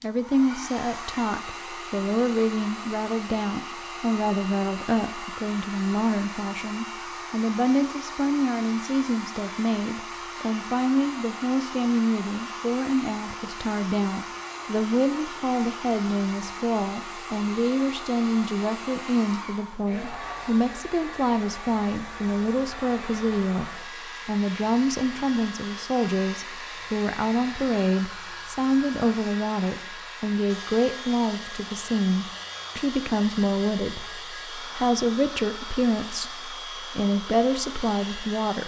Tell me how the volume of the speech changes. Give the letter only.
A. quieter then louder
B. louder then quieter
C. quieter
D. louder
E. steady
E.